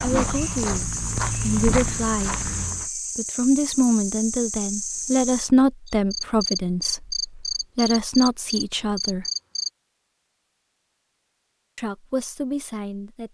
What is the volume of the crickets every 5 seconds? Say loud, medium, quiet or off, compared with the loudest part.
loud, loud, off.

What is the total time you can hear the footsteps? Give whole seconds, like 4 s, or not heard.
3 s.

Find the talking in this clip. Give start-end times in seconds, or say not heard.
0.0-9.2, 11.8-13.2.